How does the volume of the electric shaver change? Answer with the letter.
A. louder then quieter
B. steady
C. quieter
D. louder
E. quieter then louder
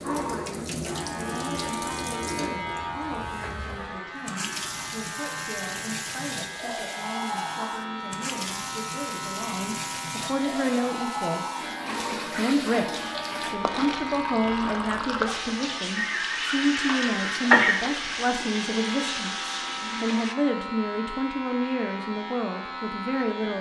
B.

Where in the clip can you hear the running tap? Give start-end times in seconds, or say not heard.
0.0-20.4.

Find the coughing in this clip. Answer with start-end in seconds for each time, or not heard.
15.9-17.9.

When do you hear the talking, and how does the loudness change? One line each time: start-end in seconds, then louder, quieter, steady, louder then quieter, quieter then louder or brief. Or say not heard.
0.0-23.5 louder.